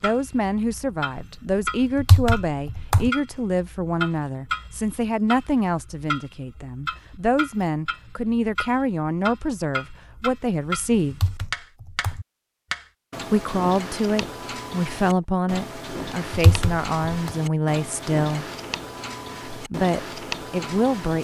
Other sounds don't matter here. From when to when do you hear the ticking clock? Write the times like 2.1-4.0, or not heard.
0.0-21.1.